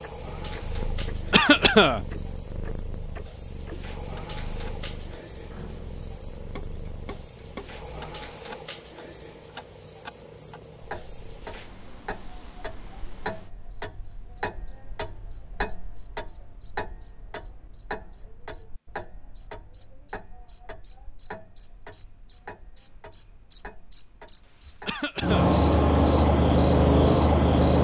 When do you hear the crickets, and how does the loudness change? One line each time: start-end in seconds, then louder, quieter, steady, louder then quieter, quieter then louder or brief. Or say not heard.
0.0-27.7 louder.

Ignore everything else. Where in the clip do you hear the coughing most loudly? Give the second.
2 s.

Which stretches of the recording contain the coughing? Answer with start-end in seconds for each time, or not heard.
1.3-2.0, 24.9-25.6.